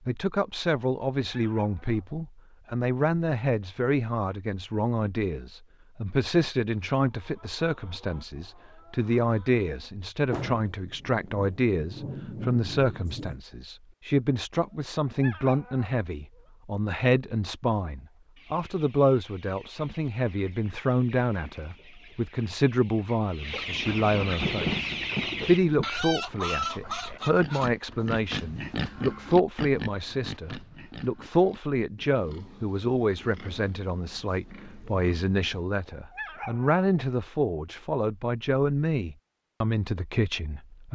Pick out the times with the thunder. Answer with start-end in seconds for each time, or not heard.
10.3-13.4, 23.9-25.9.